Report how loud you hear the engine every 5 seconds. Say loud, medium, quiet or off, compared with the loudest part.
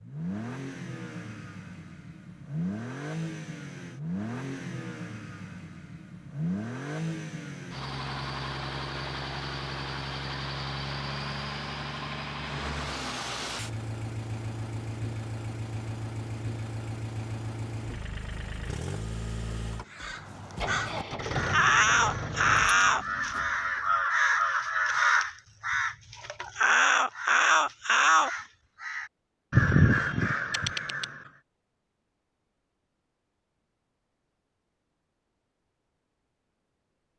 loud, loud, loud, loud, loud, off, off, off.